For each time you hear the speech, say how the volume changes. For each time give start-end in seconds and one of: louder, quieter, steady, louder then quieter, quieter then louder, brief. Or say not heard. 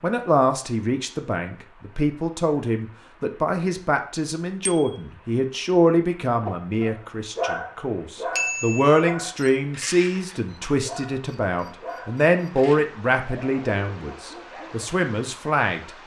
0.0-16.0 steady.